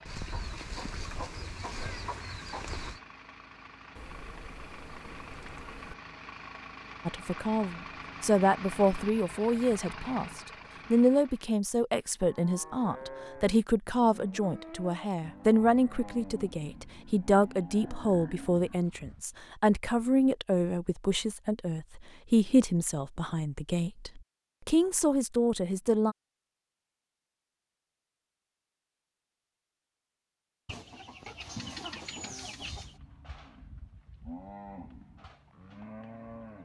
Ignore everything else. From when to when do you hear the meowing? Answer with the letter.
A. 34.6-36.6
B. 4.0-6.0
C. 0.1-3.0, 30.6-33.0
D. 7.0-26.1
B.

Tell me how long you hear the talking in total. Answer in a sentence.
The talking can be heard for 19 seconds in total.